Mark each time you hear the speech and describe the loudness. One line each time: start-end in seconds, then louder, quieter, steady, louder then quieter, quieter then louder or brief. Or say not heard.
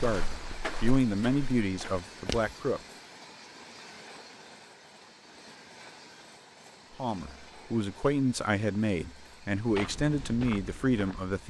0.0-2.8 brief
7.0-11.4 steady.